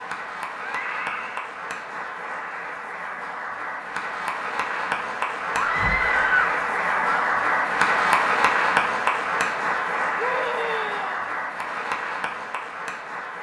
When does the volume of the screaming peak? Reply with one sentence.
The loudest moment of the screaming is at 6 seconds.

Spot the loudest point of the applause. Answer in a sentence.
The volume of the applause peaks at 8 seconds.